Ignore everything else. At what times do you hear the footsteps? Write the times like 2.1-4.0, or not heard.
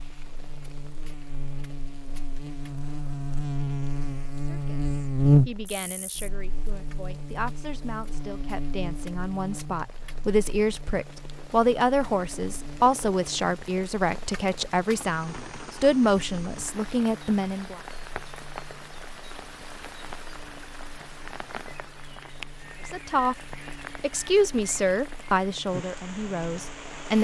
not heard.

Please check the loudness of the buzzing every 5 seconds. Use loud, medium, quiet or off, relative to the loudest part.
medium, loud, quiet, quiet, quiet, quiet.